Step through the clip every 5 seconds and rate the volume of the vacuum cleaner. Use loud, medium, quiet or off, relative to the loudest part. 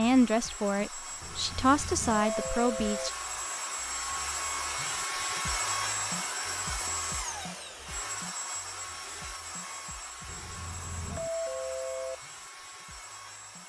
loud, loud, medium.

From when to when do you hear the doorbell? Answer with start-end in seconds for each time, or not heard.
1.2-3.1, 10.2-12.2.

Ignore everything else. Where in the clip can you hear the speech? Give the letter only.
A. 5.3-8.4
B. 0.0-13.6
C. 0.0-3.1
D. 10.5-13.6
C.